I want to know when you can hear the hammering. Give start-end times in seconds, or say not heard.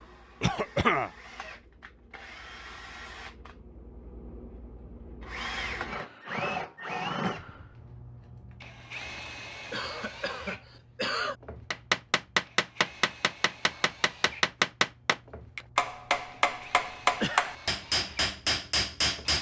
11.7-19.3.